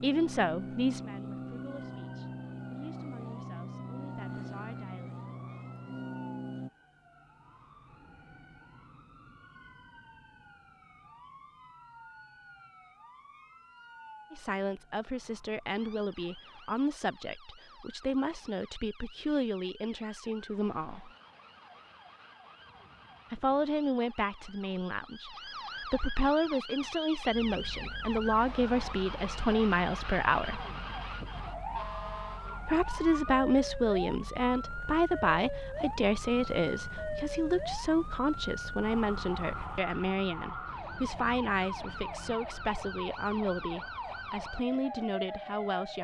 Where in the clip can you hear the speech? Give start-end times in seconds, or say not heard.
0.0-5.2, 14.3-21.1, 23.3-30.6, 32.6-45.9.